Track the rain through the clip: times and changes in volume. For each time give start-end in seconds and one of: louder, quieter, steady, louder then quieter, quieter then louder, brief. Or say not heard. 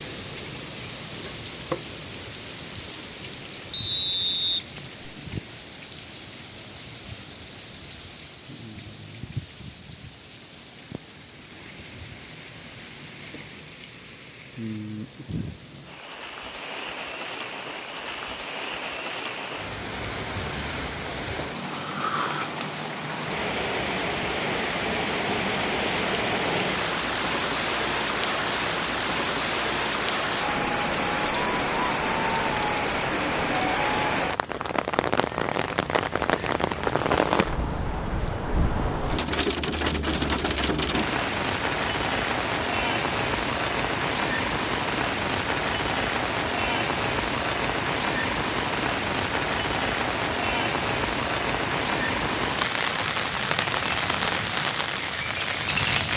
0.0-56.1 louder.